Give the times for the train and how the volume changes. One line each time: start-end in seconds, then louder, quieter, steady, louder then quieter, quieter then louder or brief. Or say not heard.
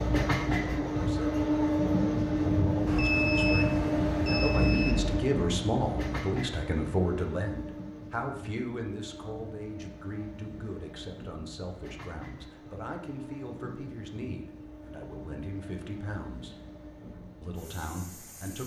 0.0-18.6 quieter.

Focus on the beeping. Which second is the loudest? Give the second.
3 s.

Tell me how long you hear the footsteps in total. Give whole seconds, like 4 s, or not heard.
not heard.